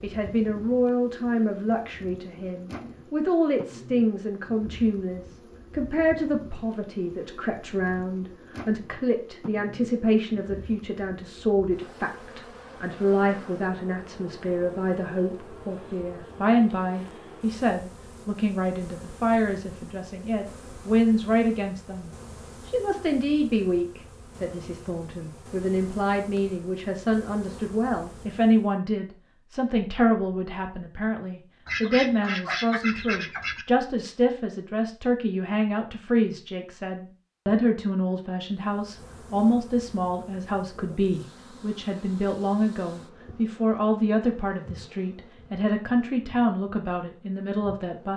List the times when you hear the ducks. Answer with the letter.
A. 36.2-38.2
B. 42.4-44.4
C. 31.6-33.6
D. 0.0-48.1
C.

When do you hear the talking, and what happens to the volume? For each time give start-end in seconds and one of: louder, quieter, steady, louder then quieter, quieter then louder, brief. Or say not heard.
0.0-48.1 steady.